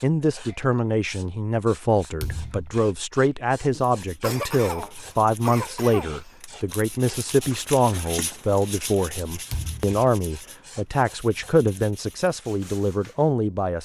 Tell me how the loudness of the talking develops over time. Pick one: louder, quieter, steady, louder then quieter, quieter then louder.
steady.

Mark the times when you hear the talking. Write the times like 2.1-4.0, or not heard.
0.0-13.8.